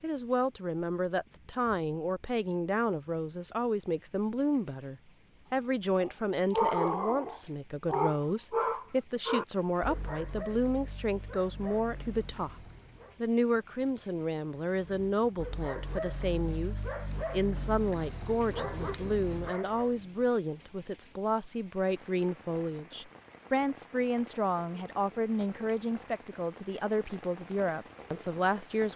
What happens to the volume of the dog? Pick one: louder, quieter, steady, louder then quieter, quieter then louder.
quieter then louder.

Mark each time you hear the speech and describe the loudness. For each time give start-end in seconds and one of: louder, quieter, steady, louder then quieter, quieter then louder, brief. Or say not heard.
0.0-28.9 steady.